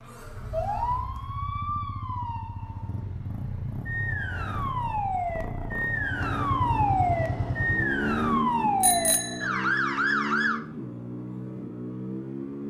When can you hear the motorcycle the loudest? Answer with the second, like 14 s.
8 s.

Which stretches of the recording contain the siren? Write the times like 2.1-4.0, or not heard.
0.0-10.6.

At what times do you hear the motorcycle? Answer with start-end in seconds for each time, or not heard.
0.0-12.6.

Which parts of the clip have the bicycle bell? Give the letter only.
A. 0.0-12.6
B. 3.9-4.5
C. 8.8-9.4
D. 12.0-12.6
C.